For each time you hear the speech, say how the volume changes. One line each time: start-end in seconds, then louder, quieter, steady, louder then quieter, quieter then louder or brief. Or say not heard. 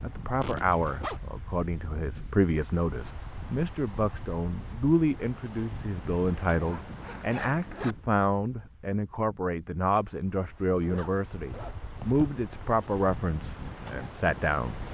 0.0-14.8 steady.